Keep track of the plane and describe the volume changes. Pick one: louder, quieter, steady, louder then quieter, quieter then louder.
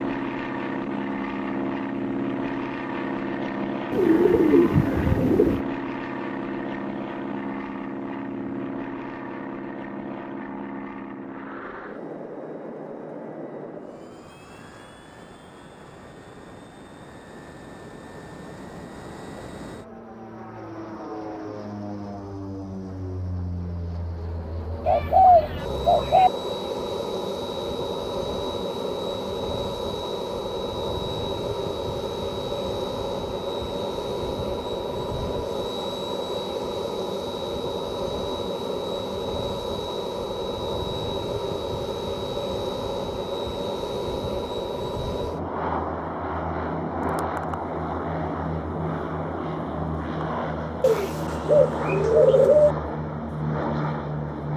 quieter then louder.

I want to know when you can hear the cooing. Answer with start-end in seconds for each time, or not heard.
3.9-5.7, 24.9-26.3, 50.8-52.8.